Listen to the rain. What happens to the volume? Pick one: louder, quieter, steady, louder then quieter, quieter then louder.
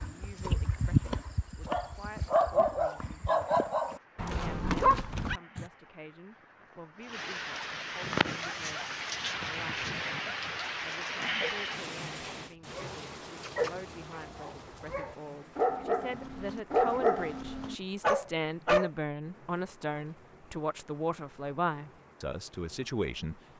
louder then quieter.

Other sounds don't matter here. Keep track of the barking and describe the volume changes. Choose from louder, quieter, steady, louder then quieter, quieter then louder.
quieter then louder.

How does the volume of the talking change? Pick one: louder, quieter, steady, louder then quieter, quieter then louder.
louder.